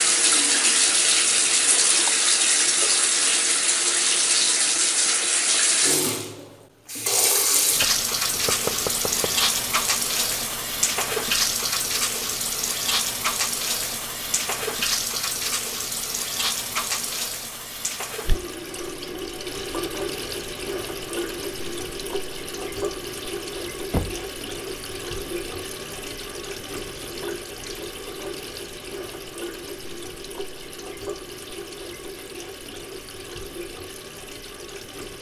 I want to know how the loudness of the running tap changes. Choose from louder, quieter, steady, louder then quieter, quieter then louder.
quieter.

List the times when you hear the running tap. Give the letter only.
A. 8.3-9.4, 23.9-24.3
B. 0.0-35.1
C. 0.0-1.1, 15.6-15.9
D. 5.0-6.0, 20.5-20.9
B.